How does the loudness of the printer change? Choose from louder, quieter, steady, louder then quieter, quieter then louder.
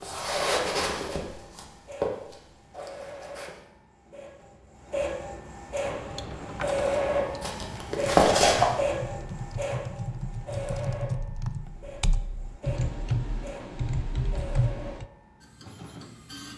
louder then quieter.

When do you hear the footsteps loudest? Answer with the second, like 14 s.
8 s.